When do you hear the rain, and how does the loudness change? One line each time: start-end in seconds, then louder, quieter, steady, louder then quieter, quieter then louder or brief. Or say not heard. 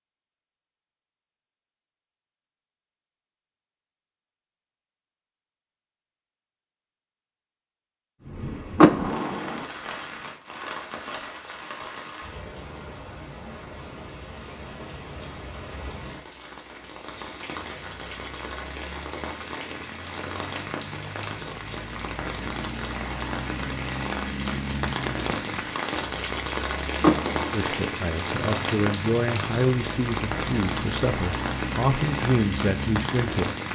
8.2-33.7 louder.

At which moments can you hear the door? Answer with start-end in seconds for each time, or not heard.
8.8-9.7, 27.0-27.7.